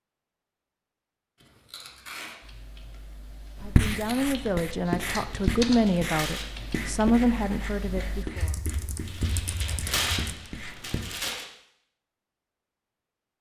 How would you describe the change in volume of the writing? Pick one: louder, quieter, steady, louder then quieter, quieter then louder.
quieter.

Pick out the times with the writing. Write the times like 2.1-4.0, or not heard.
3.6-11.1.